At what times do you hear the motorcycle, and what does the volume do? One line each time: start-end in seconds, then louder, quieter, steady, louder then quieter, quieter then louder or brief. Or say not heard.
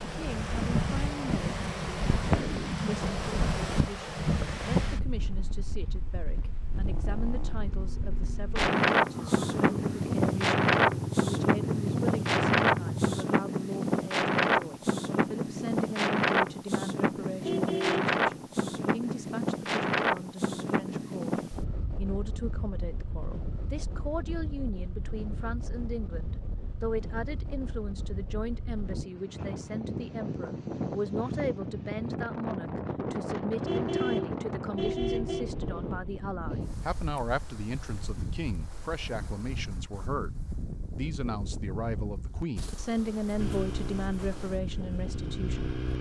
6.8-13.2 louder
43.4-45.9 brief.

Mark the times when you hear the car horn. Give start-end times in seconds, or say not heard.
17.4-18.1, 33.6-35.5.